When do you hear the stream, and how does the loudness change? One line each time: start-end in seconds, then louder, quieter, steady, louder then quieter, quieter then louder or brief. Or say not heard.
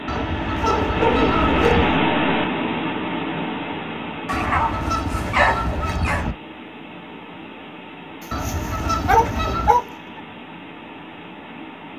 0.0-11.9 quieter.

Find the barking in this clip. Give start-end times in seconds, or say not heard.
0.1-1.9, 4.2-6.2, 8.4-10.2.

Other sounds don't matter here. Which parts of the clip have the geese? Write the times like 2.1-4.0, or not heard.
0.1-2.0, 4.3-6.3, 8.3-9.8.